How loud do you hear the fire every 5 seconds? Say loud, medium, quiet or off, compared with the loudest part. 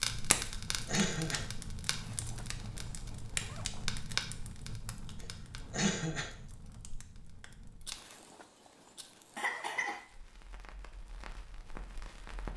loud, quiet, quiet.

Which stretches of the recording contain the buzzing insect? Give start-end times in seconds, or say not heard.
not heard.